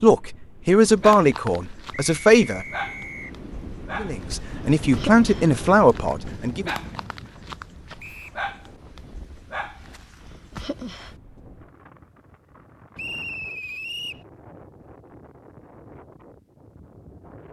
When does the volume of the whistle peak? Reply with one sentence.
The loudest moment of the whistle is at 13 seconds.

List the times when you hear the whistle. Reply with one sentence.
You can hear the whistle from 1.9 to 3.3 s, from 8.0 to 8.4 s and from 12.9 to 14.2 s.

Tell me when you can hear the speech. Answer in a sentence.
The speech can be heard from 0.0 to 2.6 s and from 4.0 to 6.7 s.